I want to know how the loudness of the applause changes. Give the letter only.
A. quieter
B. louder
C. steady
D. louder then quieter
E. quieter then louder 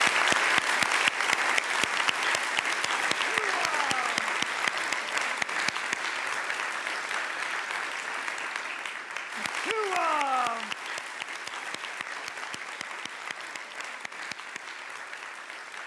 A.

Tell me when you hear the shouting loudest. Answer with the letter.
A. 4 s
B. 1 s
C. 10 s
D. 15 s
C.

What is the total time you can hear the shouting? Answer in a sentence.
You can hear the shouting for 2 seconds altogether.